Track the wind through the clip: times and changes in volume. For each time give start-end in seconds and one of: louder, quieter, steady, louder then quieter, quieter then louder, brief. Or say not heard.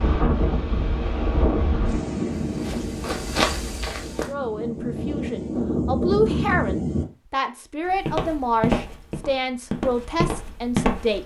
0.0-7.0 quieter then louder.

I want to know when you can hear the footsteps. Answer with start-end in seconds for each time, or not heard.
2.4-4.3, 7.8-11.2.